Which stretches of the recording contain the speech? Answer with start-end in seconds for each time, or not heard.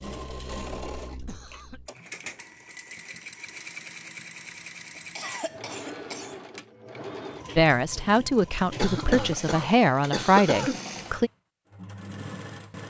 7.5-11.3.